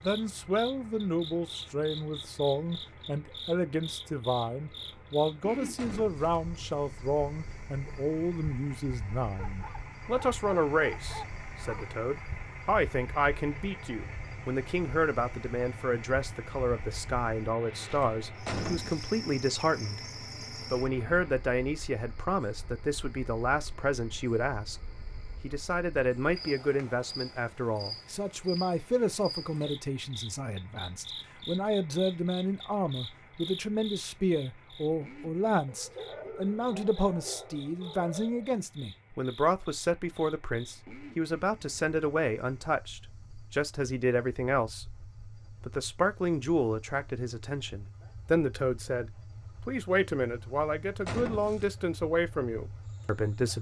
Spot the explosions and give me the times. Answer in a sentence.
You can hear the explosions from 5.8 to 6.5 s, from 18.4 to 19.1 s and from 51.0 to 51.8 s.